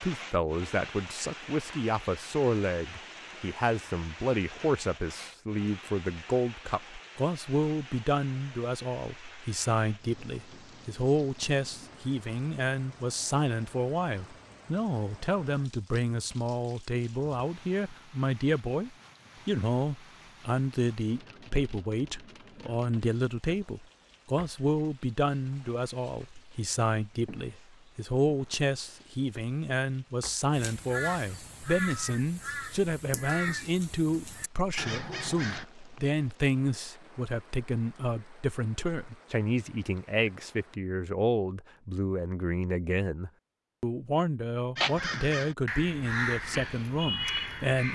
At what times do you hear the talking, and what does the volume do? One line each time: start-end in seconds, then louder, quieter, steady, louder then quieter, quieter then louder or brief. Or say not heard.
0.0-47.8 steady.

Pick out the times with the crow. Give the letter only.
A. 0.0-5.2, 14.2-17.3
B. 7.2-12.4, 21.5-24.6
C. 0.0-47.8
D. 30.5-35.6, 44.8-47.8
D.